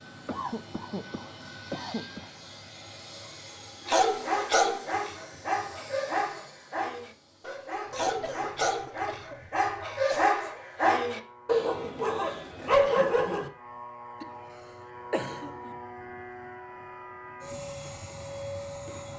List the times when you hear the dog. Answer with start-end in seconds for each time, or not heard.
3.9-13.5.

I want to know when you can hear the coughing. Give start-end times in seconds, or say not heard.
0.2-2.3, 7.9-10.3, 15.1-15.8.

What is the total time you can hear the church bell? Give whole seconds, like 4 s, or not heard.
not heard.